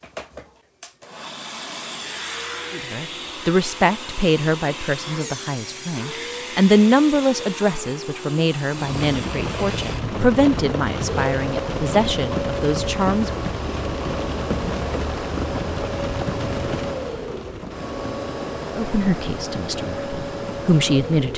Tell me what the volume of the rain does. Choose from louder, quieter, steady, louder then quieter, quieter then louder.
quieter.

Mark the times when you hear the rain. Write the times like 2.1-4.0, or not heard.
8.8-21.3.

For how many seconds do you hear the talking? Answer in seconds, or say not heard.
13 s.